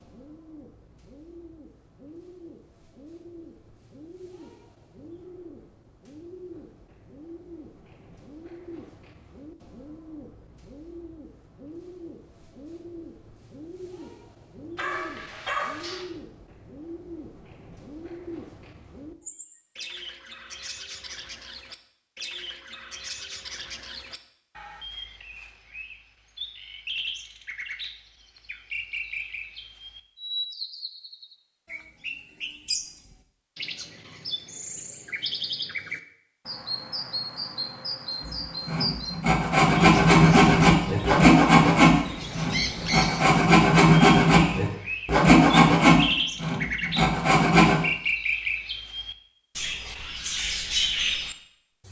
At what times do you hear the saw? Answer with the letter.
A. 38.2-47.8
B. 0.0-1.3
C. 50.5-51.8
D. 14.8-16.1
A.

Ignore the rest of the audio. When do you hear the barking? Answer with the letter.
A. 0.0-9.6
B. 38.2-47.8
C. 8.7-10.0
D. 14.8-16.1
D.